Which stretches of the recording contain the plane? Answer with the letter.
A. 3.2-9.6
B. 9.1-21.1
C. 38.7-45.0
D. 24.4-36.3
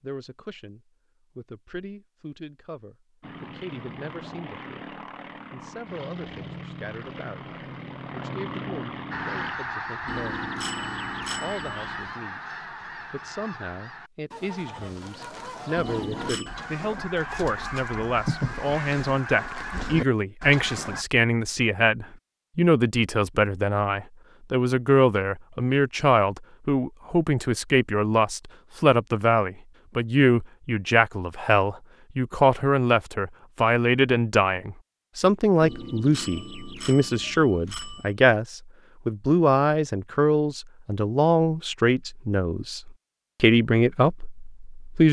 A.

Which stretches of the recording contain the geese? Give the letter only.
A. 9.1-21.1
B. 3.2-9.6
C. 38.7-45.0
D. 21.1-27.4
A.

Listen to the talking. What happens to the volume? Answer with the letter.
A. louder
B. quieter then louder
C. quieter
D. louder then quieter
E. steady
A.